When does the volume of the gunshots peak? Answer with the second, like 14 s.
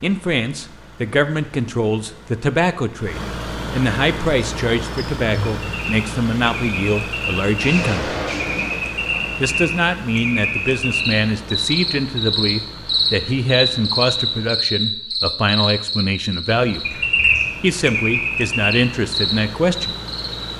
8 s.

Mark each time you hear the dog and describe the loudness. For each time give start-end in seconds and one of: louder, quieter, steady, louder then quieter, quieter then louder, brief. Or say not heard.
not heard.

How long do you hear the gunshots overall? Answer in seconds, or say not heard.
2 s.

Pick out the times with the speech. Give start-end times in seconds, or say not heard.
0.0-8.2, 9.4-16.9, 17.6-19.9.